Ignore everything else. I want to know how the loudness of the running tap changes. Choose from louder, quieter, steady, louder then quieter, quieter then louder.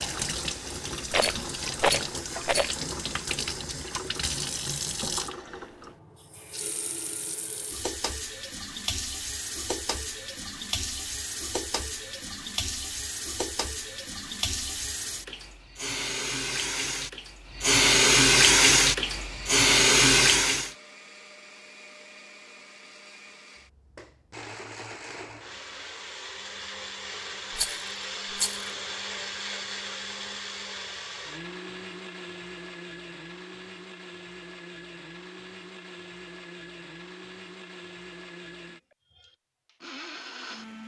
louder.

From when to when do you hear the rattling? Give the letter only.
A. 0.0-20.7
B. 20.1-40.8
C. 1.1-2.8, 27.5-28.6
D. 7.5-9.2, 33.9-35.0
C.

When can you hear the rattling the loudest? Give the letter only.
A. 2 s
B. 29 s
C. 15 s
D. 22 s
A.